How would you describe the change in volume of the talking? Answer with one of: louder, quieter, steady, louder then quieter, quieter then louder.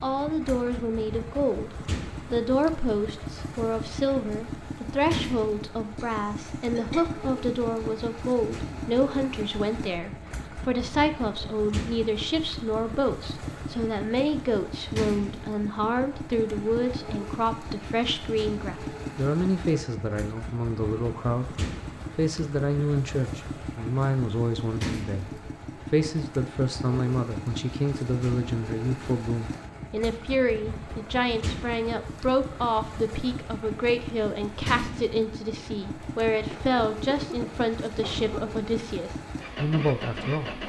steady.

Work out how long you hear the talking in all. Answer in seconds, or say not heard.
40 s.